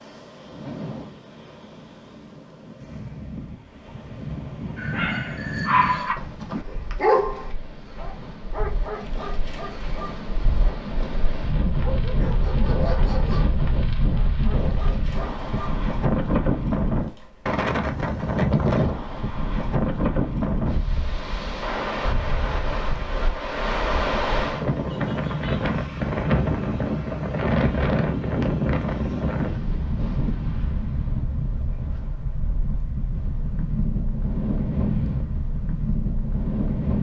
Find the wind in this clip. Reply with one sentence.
You can hear the wind from 0.0 to 36.9 s.